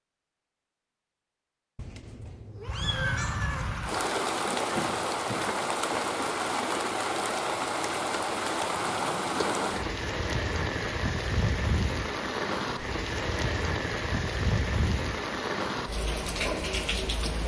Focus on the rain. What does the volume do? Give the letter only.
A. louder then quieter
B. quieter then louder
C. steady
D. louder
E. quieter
C.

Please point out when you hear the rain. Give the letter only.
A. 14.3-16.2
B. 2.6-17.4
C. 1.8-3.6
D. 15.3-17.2
B.